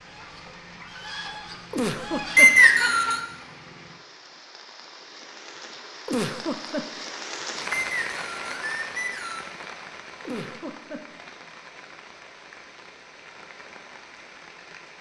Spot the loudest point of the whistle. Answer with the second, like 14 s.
3 s.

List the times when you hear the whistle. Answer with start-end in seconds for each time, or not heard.
2.4-3.2, 7.7-9.5.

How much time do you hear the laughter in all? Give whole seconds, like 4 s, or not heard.
3 s.